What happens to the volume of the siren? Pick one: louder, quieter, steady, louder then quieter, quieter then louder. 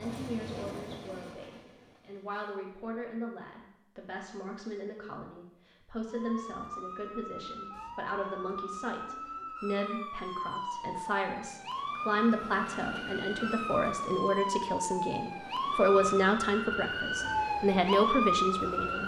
louder.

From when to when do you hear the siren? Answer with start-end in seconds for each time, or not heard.
6.0-19.0.